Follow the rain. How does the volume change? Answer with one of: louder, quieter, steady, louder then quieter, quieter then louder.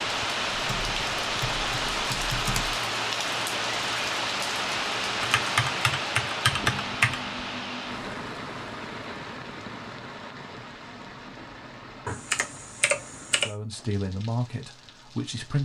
quieter.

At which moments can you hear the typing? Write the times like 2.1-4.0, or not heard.
0.5-2.8, 5.2-7.2, 12.1-13.5.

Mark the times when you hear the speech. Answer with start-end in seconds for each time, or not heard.
13.3-15.6.